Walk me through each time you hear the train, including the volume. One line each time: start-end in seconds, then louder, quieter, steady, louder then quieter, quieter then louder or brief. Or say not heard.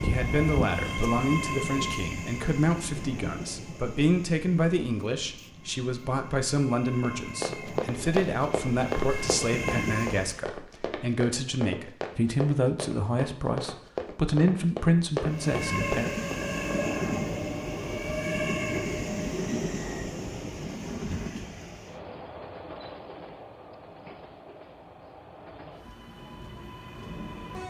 0.0-10.4 quieter then louder
15.2-27.6 quieter.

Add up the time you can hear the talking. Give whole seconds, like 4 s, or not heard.
16 s.